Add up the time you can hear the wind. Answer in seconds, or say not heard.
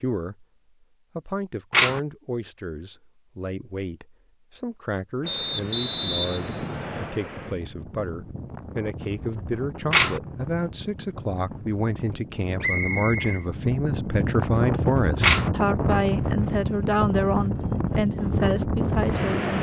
14 s.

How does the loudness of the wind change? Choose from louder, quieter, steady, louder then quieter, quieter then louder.
louder.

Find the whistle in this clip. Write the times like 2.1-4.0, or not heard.
5.2-7.2, 12.6-13.4.